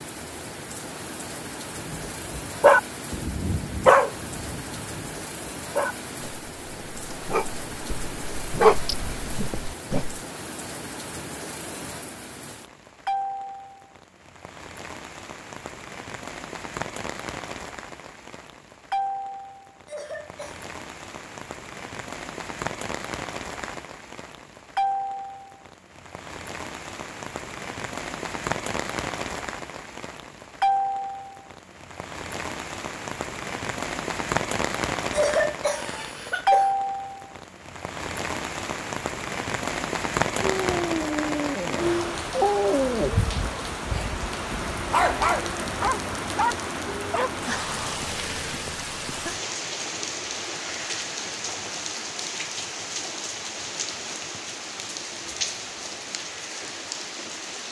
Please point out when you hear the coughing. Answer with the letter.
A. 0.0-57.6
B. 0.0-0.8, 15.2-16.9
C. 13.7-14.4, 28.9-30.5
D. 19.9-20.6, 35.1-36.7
D.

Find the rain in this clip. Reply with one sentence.
You can hear the rain from 0.0 to 57.6 s.